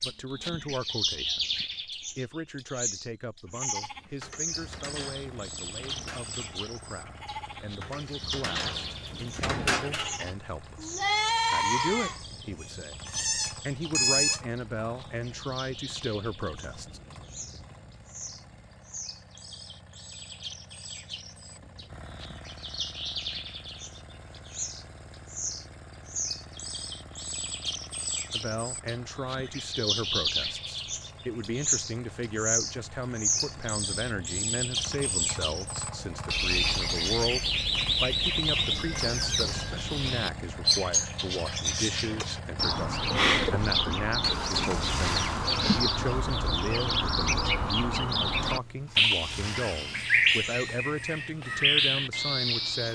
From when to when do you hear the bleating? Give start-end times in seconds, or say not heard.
3.5-14.4.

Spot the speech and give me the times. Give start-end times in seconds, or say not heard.
0.0-17.0, 28.3-52.8.